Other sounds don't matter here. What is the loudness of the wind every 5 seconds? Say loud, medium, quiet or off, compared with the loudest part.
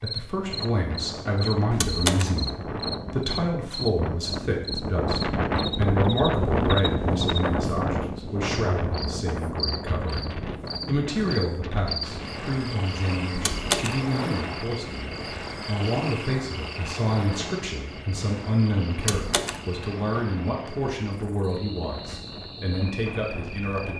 medium, loud, medium, quiet, quiet.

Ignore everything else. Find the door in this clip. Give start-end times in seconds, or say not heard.
1.7-2.4, 13.3-14.0, 18.9-19.6.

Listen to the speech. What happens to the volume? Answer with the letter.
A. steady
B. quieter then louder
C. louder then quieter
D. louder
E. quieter
A.